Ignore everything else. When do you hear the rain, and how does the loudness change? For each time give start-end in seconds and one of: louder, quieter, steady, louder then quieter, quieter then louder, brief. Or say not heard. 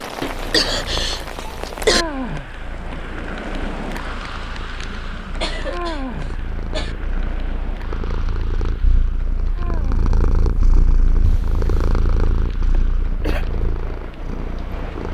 0.0-15.0 quieter.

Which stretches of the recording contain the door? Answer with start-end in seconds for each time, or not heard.
11.2-11.9.